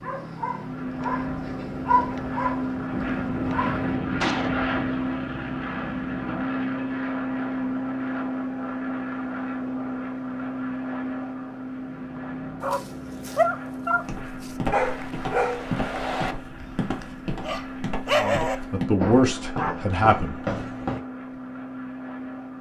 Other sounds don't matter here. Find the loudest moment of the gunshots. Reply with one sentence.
The loudest moment of the gunshots is at 4 seconds.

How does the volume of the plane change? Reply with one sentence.
The loudness of the plane goes down.